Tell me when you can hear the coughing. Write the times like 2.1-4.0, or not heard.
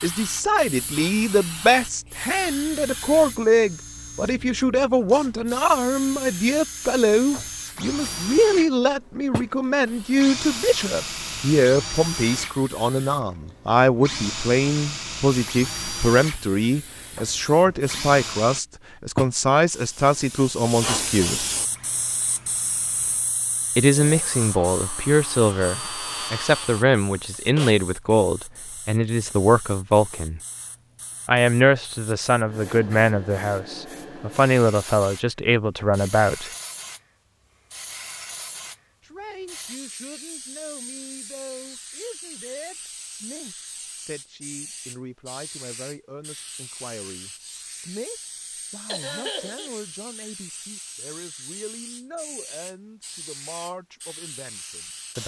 48.9-49.7.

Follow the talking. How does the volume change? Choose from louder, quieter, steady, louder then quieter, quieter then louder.
quieter.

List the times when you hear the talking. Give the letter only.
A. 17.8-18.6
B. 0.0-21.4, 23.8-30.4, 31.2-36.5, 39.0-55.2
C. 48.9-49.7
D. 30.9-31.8
B.